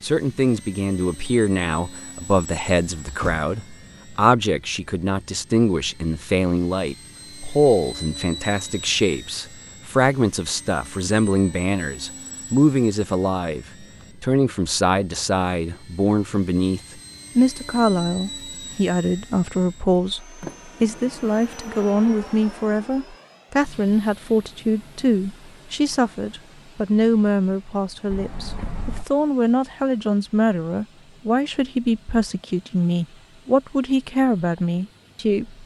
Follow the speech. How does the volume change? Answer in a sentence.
The volume of the speech stays about the same.